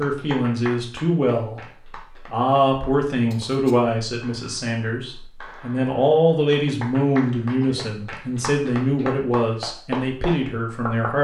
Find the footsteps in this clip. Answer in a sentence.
The footsteps can't be heard in this clip.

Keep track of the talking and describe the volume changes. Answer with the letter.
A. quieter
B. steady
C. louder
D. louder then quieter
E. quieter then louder
B.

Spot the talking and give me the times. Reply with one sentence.
You can hear the talking from 0.0 to 11.2 s.